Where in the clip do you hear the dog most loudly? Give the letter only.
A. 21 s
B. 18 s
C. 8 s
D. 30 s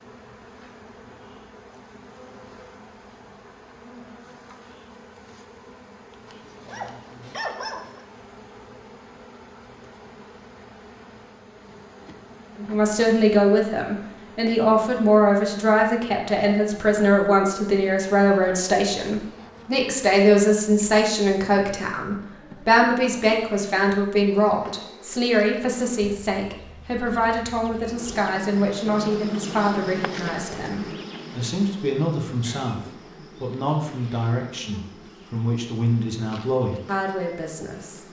C.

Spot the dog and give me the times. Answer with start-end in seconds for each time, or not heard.
6.2-8.1.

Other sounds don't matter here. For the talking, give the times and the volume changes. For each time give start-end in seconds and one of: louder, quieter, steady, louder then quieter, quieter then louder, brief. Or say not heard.
12.6-38.0 quieter.